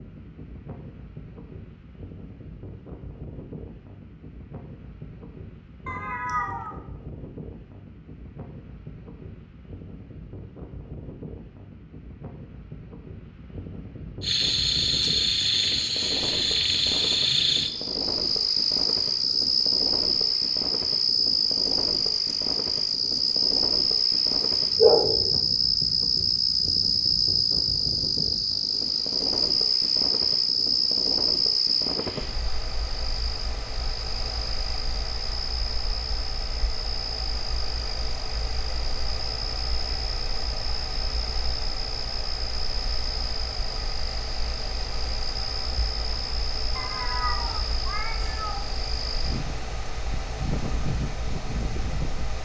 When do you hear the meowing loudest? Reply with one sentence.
The loudest moment of the meowing is at 25 seconds.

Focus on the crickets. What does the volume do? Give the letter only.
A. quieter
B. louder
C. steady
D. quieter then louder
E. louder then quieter
A.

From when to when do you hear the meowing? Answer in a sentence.
The meowing can be heard from 5.8 to 6.8 s, from 24.8 to 25.3 s and from 46.8 to 48.6 s.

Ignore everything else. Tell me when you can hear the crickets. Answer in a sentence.
The crickets can be heard from 14.2 to 52.3 s.